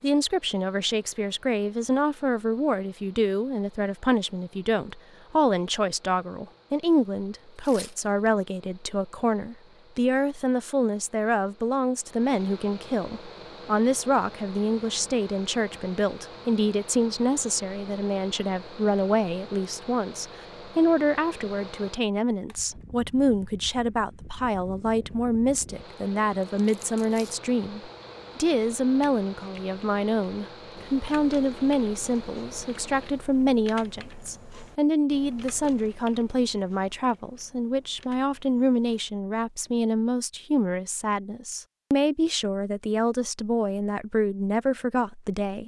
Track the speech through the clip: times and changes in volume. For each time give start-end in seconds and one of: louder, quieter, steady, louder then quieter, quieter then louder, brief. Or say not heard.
0.0-45.6 steady.